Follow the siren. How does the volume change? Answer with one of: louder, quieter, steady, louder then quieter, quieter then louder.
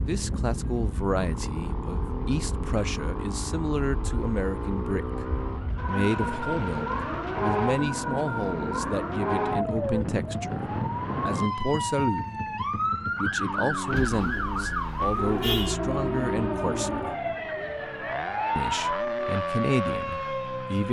louder.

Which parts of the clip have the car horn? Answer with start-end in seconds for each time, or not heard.
13.9-15.8.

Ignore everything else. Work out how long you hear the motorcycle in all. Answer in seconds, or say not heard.
21 s.